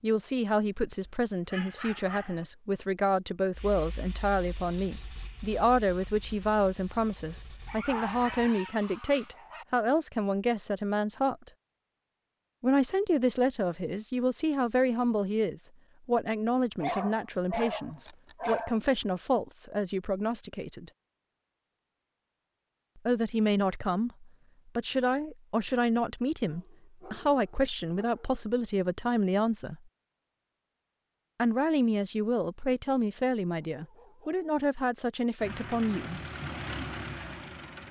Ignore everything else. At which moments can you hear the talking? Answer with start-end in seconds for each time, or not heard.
0.0-11.5, 12.6-20.9, 22.9-29.8, 31.4-36.2.